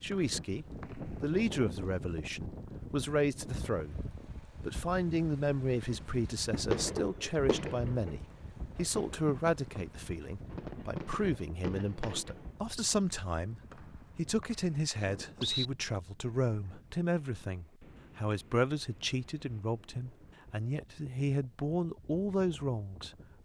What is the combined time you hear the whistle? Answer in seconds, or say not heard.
3 s.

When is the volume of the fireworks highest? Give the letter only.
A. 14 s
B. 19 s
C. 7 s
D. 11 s
C.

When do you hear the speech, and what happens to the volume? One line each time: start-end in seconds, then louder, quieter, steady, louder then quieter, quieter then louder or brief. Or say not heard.
0.0-23.1 steady.